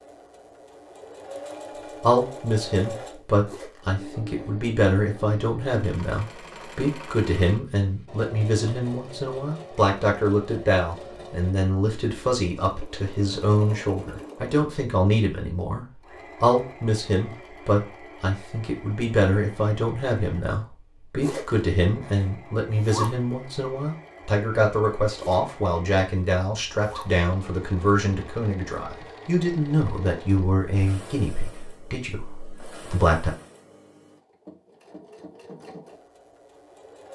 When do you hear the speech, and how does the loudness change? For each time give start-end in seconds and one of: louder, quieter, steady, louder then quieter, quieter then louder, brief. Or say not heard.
2.0-33.4 steady.